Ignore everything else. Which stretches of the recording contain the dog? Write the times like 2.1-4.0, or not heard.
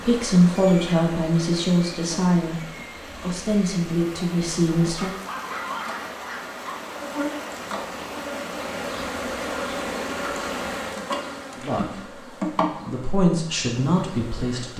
5.0-6.7.